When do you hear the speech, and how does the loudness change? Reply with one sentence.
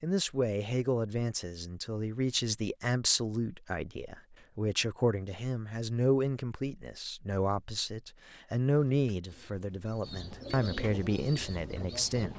You can hear the speech from 0.0 to 12.3 s, at a steady volume.